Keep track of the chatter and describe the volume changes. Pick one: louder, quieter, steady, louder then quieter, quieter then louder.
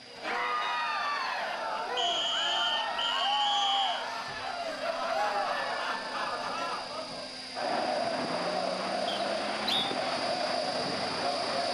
steady.